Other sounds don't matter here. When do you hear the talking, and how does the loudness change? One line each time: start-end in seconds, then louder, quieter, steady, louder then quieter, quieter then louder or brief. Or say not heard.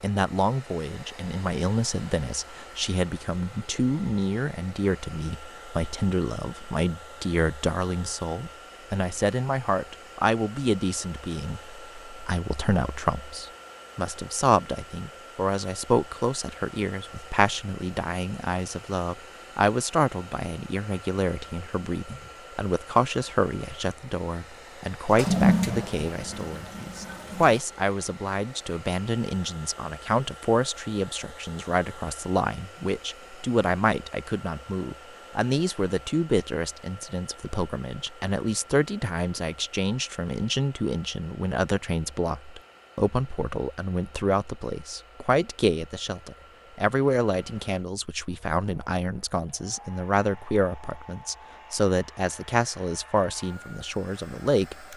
0.0-54.9 steady.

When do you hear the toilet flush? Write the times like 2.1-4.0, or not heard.
25.1-27.6.